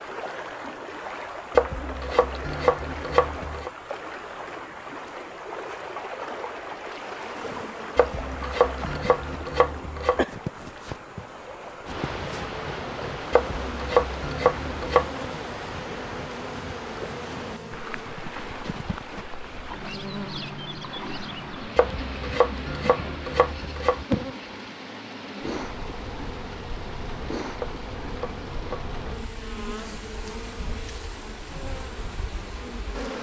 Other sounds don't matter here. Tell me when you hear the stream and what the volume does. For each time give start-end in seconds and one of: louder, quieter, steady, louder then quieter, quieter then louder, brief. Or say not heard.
0.0-33.1 quieter.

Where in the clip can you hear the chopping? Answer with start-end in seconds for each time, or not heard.
1.6-3.7, 8.0-10.2, 13.3-15.2, 21.8-24.1, 27.6-28.9.